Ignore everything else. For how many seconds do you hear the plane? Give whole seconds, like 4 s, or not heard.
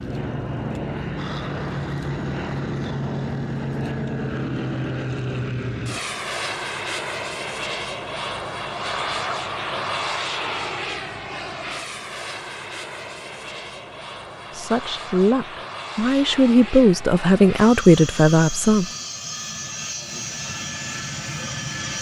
22 s.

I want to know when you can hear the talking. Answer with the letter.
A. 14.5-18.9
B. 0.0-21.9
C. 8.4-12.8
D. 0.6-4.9
A.